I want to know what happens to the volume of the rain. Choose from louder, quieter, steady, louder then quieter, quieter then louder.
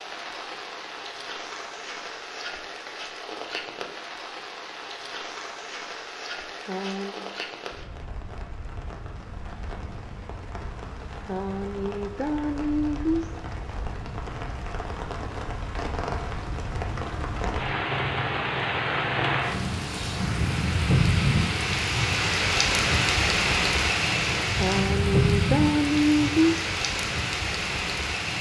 louder.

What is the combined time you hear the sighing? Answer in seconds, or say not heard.
5 s.